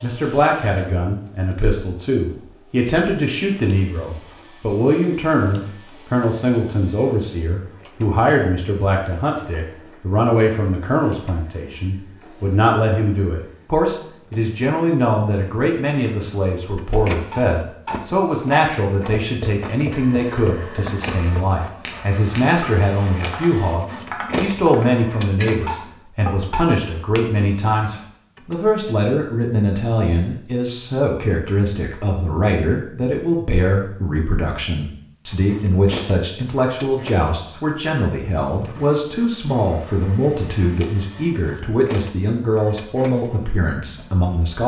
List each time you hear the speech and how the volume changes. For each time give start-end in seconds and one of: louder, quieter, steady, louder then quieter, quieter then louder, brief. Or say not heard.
0.0-44.6 steady.